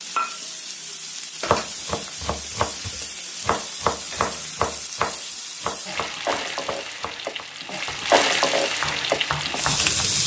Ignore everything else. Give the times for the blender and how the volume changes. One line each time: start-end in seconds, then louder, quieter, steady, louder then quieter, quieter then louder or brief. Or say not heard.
not heard.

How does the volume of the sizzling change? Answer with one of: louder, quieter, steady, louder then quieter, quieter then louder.
louder.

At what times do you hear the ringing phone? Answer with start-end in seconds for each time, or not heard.
not heard.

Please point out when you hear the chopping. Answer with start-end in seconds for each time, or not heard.
1.4-10.0.